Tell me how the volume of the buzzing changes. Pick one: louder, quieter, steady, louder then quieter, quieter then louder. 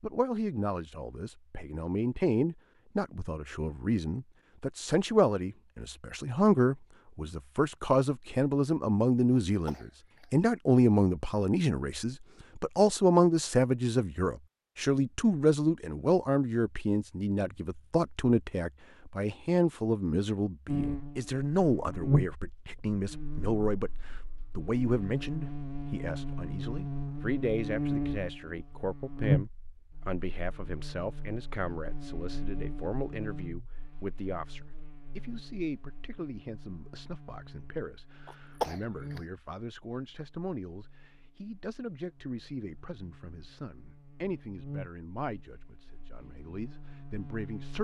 quieter.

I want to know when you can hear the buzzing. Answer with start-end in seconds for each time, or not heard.
20.6-47.7.